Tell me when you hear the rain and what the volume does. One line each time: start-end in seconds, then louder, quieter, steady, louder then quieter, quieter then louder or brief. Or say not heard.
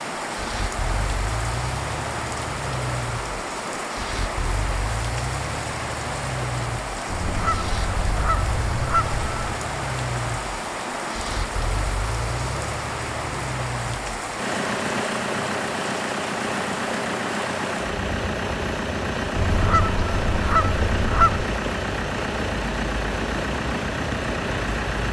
0.0-25.0 steady.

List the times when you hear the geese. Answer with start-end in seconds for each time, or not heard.
7.0-9.6, 19.4-21.5.